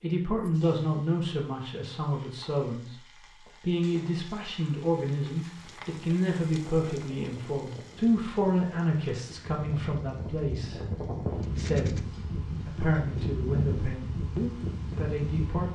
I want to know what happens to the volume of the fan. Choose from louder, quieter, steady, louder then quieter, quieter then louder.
louder.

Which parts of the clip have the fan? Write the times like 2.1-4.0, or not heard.
5.5-15.6.